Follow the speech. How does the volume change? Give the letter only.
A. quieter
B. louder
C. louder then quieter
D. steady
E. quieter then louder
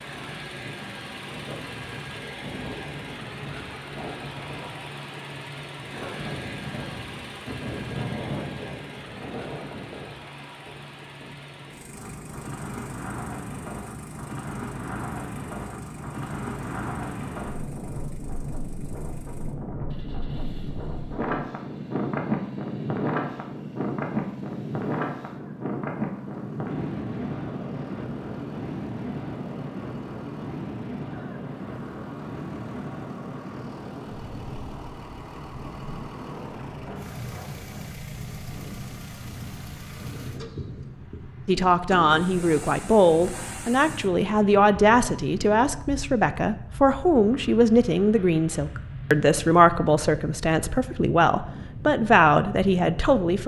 D.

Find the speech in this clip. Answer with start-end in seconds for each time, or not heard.
41.5-53.4.